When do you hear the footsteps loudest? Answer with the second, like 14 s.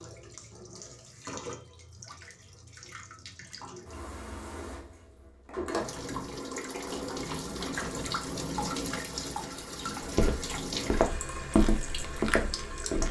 12 s.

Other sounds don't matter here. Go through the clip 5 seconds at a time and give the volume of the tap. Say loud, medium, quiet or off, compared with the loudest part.
medium, loud, loud.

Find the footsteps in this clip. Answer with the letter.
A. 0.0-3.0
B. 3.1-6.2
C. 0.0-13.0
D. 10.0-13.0
D.